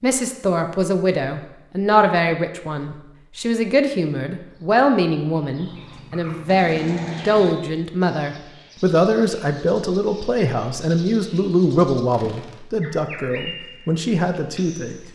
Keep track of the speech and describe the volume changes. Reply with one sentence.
The volume of the speech stays about the same.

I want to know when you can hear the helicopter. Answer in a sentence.
The helicopter can't be heard in this clip.